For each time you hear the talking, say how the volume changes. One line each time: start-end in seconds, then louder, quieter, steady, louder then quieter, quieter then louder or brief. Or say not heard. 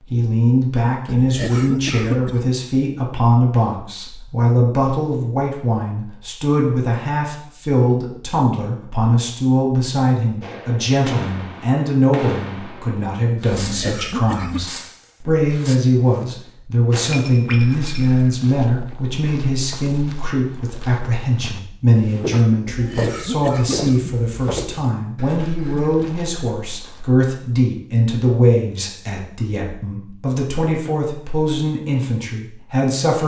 0.0-33.2 steady.